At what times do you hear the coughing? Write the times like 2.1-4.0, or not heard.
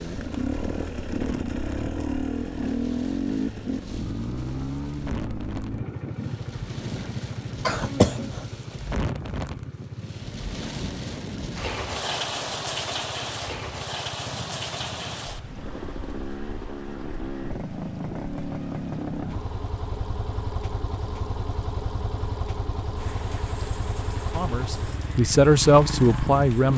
7.7-8.4.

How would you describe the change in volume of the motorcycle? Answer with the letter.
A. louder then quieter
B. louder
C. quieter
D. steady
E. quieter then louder
E.